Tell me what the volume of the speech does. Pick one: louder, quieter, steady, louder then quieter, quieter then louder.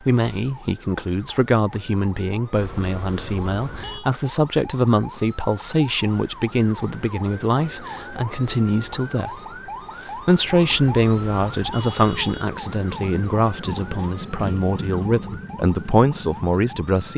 steady.